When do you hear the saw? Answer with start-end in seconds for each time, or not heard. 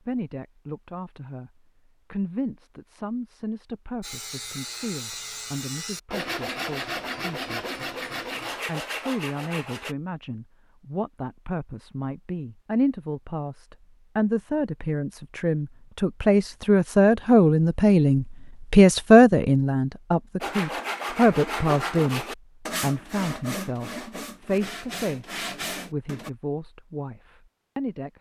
4.0-9.9, 20.4-26.3.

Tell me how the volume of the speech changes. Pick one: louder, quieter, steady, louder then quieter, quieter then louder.
louder then quieter.